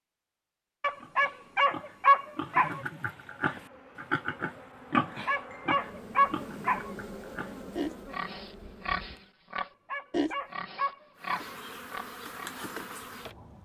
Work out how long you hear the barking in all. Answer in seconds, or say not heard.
6 s.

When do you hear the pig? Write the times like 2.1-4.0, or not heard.
1.0-12.6.